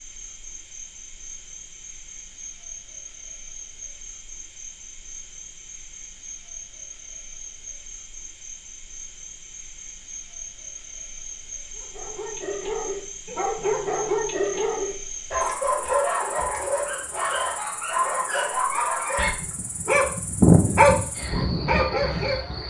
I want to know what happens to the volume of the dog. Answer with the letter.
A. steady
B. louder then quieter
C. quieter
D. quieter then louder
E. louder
E.